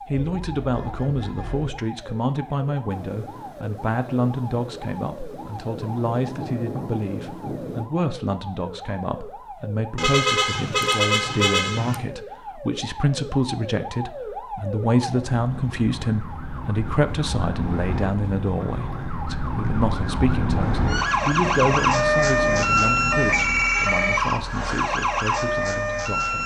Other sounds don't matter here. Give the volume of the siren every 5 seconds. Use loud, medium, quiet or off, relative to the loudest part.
quiet, quiet, quiet, medium, loud, loud.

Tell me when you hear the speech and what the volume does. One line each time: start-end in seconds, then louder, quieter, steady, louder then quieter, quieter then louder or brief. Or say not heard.
0.1-26.4 steady.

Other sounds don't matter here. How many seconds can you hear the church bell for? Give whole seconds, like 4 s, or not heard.
not heard.